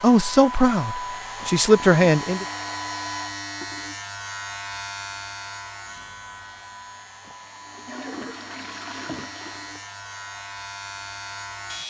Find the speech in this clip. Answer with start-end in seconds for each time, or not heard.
0.0-2.5.